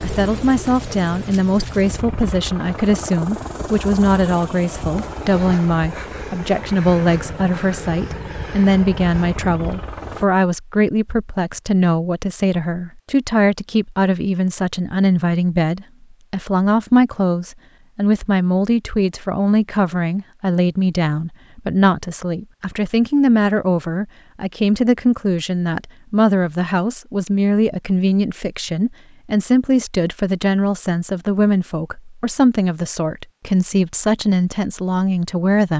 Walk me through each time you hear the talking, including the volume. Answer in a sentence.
The talking can be heard from 0.0 to 35.7 s, at a steady volume.